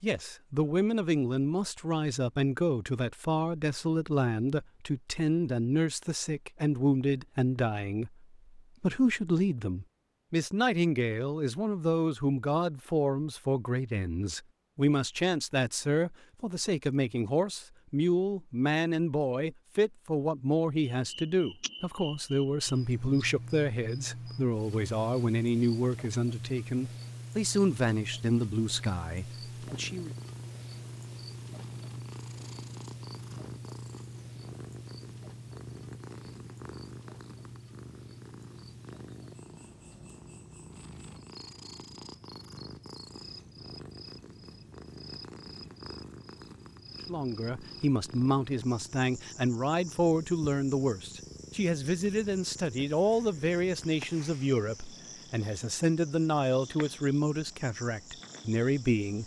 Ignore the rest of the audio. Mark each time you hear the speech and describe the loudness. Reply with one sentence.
You can hear the speech from 0.0 to 30.1 s, at a steady volume; and from 47.0 to 59.2 s, at a steady volume.